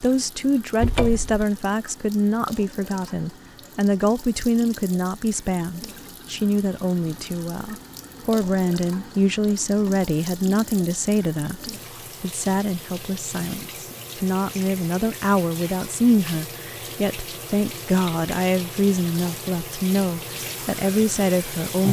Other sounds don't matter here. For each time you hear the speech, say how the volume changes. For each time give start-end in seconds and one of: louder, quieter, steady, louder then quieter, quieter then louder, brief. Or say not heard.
0.0-21.8 steady.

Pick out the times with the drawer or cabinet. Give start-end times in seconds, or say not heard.
0.8-1.4.